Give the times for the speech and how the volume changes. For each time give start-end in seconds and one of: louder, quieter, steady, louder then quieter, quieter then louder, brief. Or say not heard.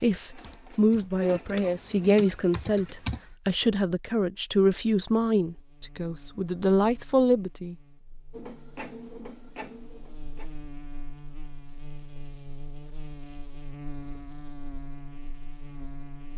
0.0-7.8 steady.